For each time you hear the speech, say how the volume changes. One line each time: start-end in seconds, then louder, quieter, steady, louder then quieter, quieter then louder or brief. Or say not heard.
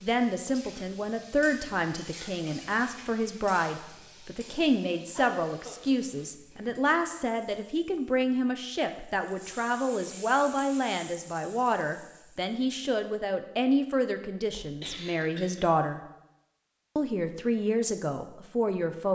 0.0-16.0 steady
16.9-19.1 brief.